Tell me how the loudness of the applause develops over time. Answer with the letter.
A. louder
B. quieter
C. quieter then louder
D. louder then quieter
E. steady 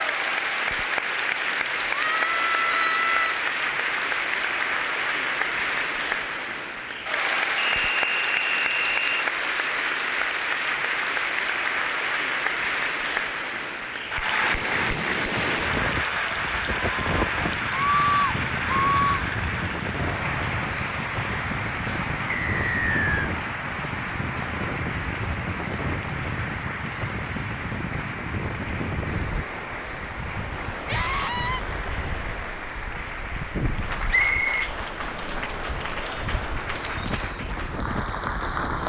B.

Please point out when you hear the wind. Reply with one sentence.
You can hear the wind from 14.4 to 38.8 s.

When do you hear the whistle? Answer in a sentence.
You can hear the whistle from 7.6 to 9.1 s, from 22.3 to 23.3 s and from 34.1 to 34.5 s.